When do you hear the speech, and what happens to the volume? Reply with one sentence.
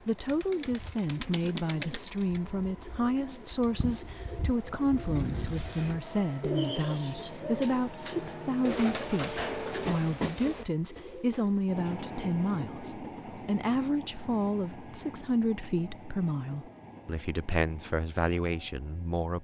You can hear the speech from 0.1 to 19.3 s, at a steady volume.